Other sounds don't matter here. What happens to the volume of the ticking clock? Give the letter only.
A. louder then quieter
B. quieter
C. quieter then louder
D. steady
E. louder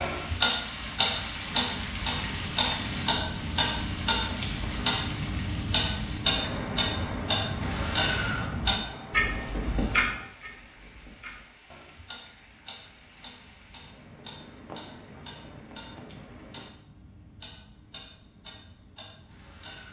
B.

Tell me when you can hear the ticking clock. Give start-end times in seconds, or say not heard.
0.0-19.8.